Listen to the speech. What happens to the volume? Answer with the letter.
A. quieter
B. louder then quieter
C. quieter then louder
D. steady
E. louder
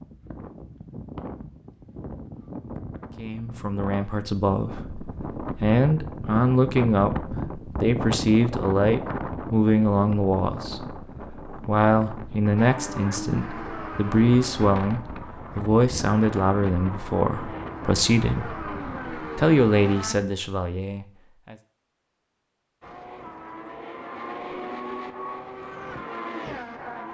D.